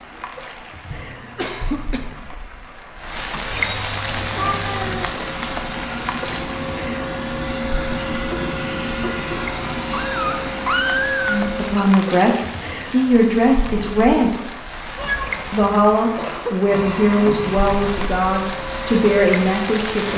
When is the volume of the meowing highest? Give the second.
11 s.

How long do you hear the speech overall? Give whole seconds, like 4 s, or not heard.
8 s.